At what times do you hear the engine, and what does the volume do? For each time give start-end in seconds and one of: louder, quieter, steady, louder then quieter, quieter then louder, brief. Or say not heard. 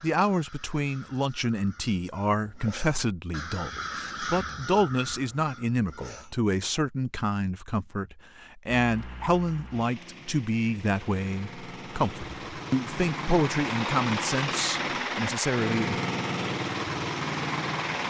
8.8-18.0 louder.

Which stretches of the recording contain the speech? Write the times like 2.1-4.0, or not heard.
0.0-15.9.